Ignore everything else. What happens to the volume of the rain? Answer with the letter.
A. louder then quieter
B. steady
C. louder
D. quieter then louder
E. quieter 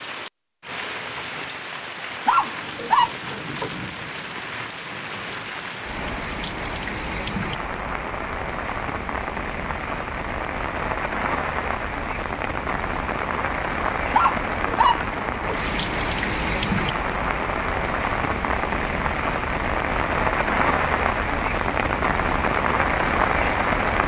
C.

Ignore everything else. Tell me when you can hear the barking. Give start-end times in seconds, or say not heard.
2.2-3.8, 14.1-15.7.